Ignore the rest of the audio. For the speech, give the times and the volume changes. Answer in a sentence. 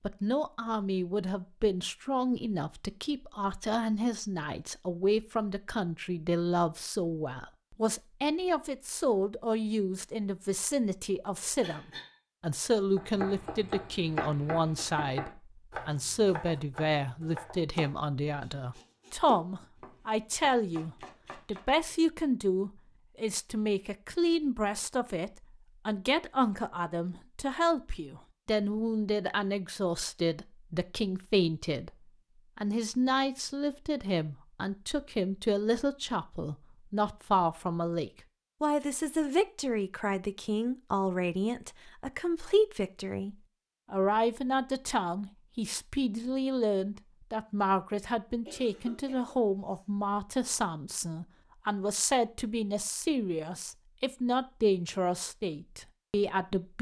You can hear the speech from 0.0 to 56.7 s, at a steady volume.